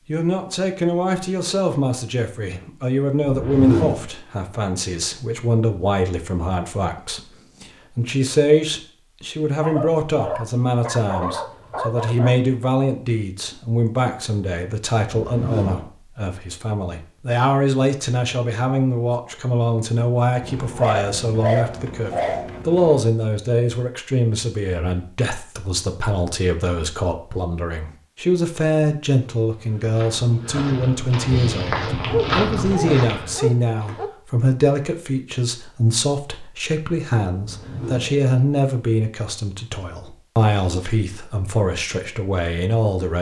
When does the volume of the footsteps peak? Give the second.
32 s.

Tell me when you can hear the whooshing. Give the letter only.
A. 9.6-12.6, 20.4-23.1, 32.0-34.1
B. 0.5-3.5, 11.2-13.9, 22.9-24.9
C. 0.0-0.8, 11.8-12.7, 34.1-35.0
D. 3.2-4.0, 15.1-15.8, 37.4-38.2
D.